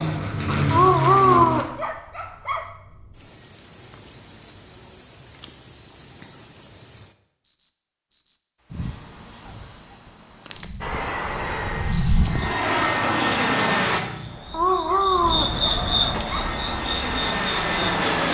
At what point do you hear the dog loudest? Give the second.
1 s.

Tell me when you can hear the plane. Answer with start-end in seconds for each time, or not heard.
0.0-1.6, 10.8-14.0, 16.2-18.2.